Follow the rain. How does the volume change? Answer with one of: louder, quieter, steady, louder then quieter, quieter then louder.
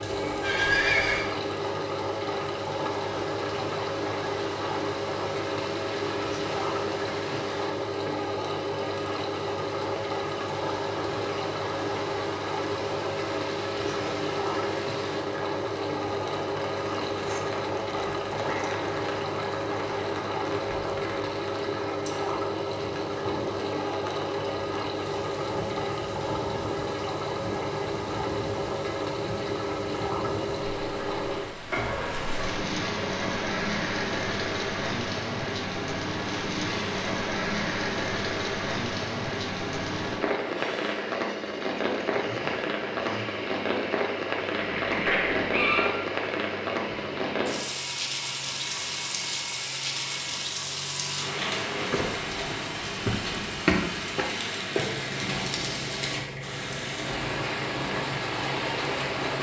louder.